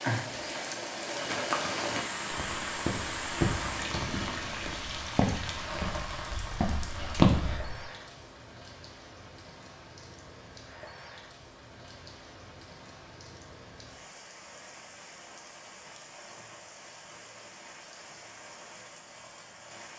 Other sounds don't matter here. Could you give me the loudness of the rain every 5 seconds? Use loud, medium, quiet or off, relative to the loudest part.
loud, medium, quiet, quiet.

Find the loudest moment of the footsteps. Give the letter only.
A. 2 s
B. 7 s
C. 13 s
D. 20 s
B.